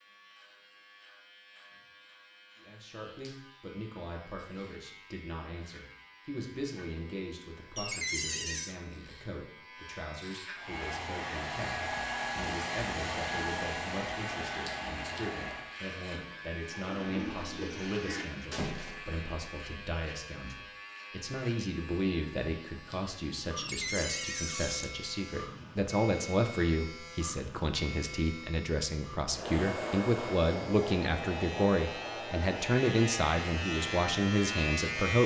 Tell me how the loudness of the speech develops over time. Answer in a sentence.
The volume of the speech goes up.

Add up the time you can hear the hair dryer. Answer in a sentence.
The hair dryer can be heard for 11 seconds in total.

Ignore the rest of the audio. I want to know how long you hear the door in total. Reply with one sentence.
The door can be heard for 3 seconds in total.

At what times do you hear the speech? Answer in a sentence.
You can hear the speech from 2.6 to 35.2 s.